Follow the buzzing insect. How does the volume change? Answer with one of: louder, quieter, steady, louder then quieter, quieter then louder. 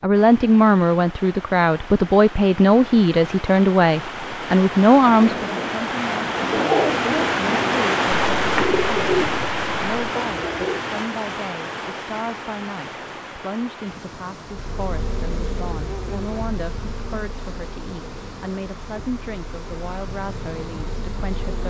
quieter then louder.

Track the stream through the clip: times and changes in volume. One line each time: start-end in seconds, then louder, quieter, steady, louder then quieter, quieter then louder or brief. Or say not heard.
0.0-21.6 louder then quieter.